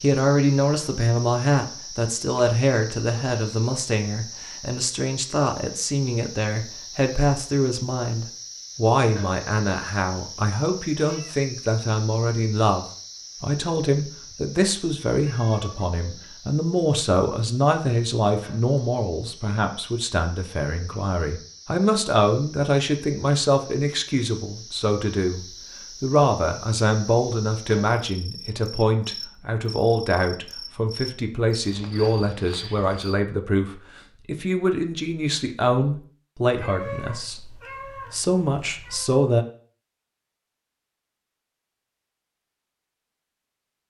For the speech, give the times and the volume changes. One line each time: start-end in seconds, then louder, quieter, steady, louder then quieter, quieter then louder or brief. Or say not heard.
0.0-39.5 steady.